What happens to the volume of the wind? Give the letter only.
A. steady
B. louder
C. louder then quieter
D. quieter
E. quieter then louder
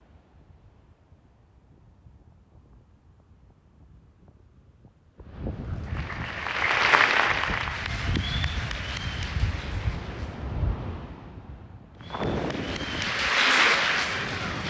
B.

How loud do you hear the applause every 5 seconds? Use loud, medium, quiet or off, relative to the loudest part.
off, loud, loud.